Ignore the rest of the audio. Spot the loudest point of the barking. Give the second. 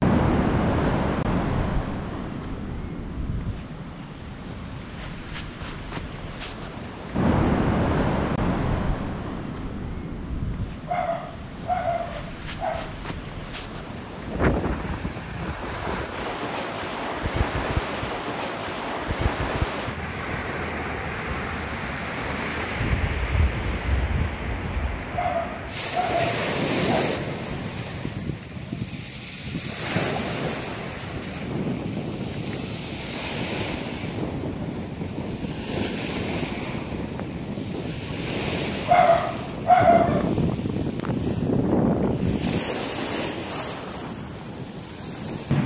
40 s.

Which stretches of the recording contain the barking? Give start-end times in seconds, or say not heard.
10.8-12.9, 25.1-27.1, 38.9-40.3.